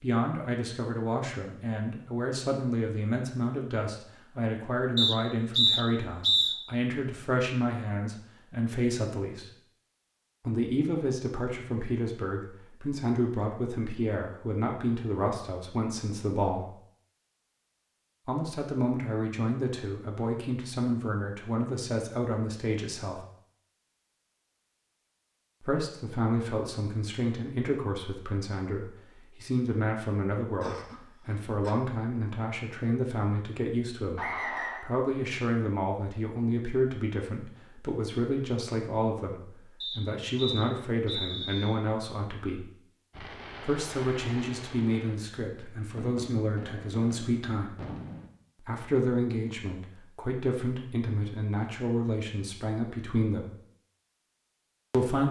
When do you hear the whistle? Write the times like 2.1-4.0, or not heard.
5.0-6.5, 34.1-34.9, 39.8-41.8.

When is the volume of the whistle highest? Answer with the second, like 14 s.
6 s.